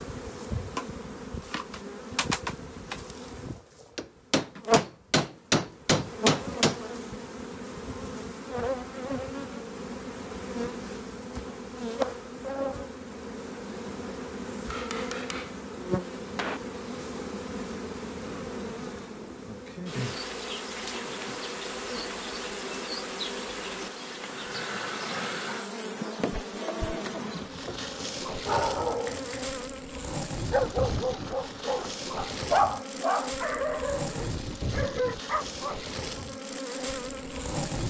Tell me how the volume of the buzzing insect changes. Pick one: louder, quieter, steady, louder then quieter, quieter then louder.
steady.